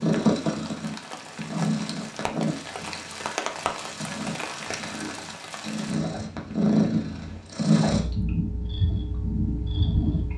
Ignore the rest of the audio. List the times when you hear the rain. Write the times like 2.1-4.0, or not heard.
0.0-7.5.